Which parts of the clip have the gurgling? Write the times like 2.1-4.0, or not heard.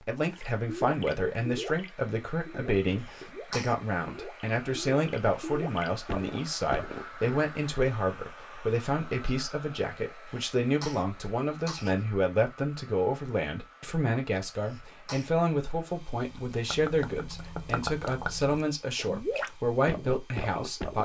0.3-7.2, 16.1-21.0.